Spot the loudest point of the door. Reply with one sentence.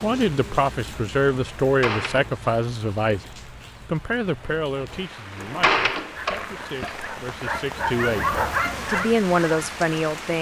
The volume of the door peaks at 6 seconds.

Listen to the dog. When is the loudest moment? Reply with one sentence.
The volume of the dog peaks at 8 seconds.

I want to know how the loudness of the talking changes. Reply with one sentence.
The loudness of the talking goes down, then up.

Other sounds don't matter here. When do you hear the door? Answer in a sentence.
You can hear the door from 1.6 to 2.3 s and from 5.3 to 7.1 s.